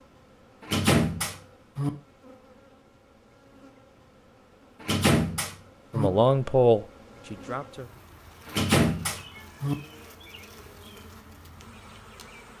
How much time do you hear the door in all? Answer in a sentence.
You can hear the door for 4 seconds altogether.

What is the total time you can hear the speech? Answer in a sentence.
The speech can be heard for 2 seconds in total.